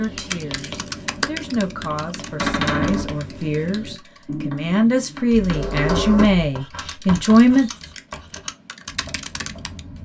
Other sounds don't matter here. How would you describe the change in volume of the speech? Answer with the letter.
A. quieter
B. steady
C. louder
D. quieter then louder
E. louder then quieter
C.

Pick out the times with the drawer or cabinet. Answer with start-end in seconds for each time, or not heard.
2.4-3.1, 5.3-6.5.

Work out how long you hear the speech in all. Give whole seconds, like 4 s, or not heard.
8 s.